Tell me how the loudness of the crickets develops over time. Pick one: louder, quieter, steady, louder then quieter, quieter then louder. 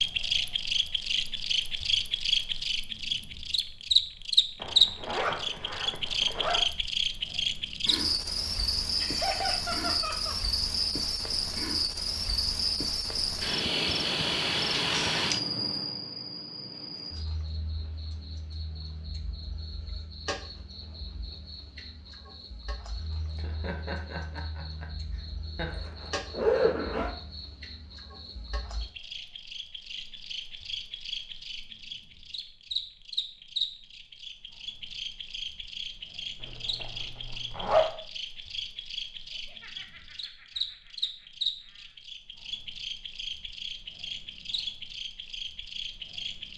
quieter then louder.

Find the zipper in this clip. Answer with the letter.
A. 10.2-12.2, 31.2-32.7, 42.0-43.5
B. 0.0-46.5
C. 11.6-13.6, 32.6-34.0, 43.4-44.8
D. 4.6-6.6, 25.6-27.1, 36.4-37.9
D.